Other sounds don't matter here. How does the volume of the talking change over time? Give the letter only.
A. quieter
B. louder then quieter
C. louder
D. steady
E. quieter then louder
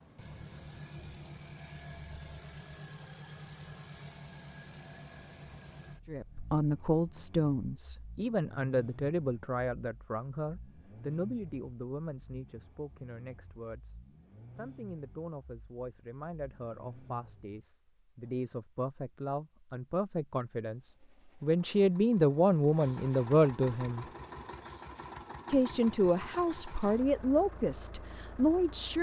E.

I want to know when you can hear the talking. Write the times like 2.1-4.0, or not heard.
6.0-24.1, 25.4-28.9.